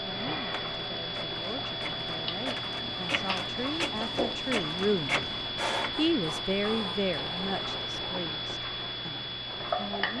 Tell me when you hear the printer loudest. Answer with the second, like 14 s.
5 s.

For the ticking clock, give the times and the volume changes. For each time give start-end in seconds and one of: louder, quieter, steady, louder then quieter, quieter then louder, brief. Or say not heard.
0.0-10.1 steady.